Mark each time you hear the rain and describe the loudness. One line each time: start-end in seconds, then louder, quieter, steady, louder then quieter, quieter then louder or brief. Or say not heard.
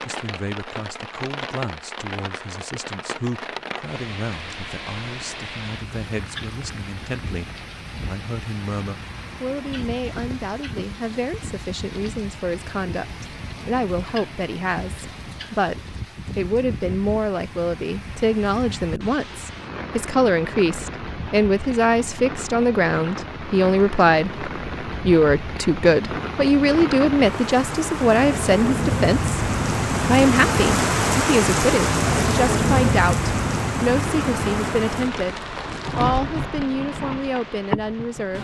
0.0-38.3 louder.